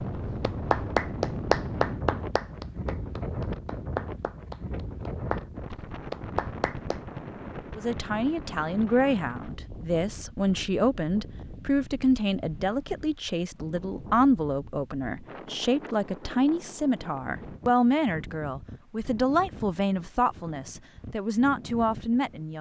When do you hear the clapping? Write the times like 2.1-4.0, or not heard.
0.4-7.0.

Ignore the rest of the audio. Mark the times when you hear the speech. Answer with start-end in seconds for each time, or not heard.
7.8-22.5.